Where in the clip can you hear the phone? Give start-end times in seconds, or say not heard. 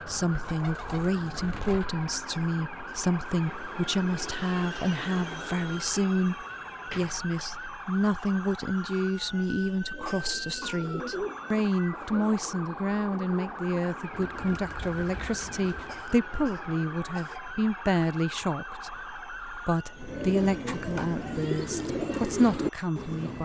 not heard.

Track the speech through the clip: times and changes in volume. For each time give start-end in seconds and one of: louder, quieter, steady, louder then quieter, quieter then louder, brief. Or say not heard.
0.1-23.4 steady.